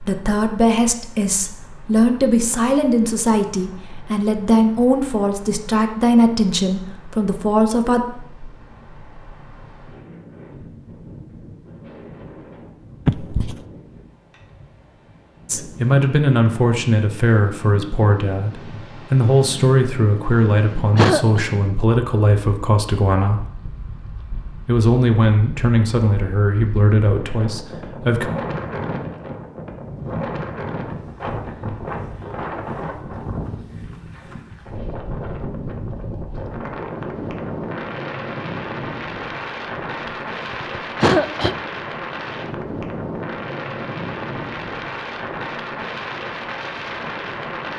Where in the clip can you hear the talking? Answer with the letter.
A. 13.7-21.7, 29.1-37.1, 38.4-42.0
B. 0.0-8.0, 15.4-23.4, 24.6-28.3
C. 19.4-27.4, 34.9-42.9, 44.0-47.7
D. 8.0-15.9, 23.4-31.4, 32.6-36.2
B.